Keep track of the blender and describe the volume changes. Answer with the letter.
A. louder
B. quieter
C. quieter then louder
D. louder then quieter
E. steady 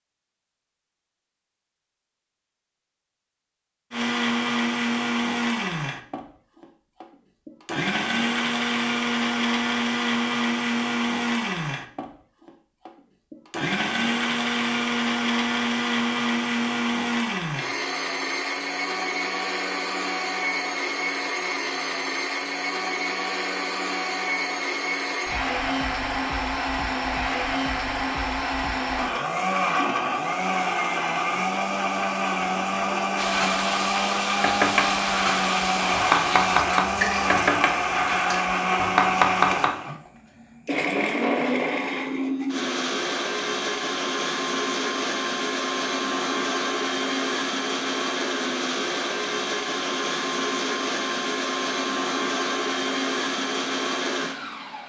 E.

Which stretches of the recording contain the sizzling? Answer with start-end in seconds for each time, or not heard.
33.1-38.5.